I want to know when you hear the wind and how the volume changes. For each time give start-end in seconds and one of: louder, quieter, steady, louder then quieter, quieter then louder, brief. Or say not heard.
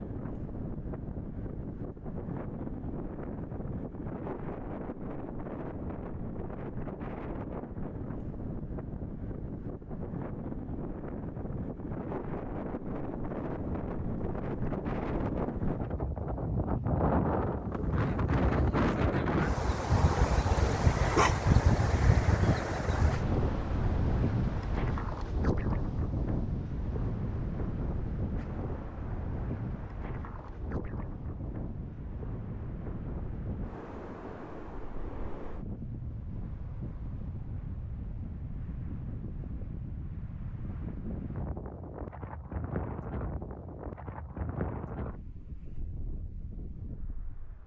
0.0-47.6 louder then quieter.